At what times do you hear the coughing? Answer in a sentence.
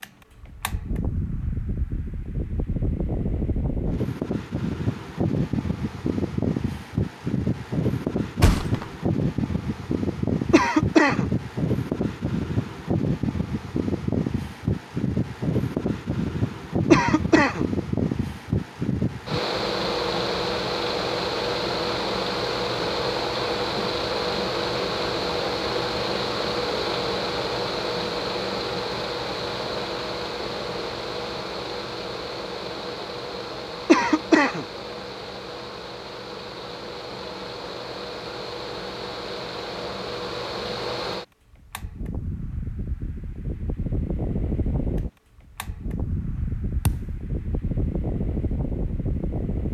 You can hear the coughing from 10.5 to 11.3 s, from 16.9 to 17.6 s and from 33.9 to 34.6 s.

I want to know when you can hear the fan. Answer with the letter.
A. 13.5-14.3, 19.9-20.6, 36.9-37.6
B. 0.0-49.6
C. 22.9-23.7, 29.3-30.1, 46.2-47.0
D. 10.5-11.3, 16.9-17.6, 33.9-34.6
B.